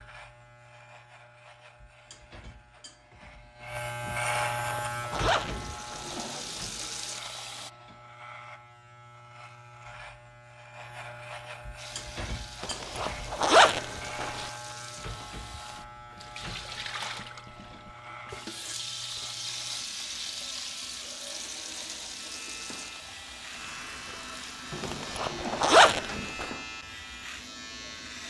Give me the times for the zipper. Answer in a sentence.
The zipper can be heard from 4.3 to 6.2 s, from 12.6 to 14.5 s and from 24.8 to 26.5 s.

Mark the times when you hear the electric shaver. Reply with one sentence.
The electric shaver can be heard from 0.0 to 28.2 s.